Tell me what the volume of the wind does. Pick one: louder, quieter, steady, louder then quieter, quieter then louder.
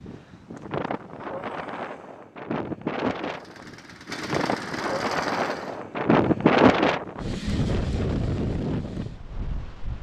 louder then quieter.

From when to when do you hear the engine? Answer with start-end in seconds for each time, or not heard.
3.2-5.8.